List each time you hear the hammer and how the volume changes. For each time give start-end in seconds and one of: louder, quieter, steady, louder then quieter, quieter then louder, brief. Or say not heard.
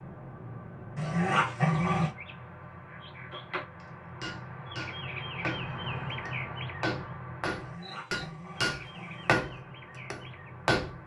3.3-11.0 louder.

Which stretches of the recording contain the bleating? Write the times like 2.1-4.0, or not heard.
not heard.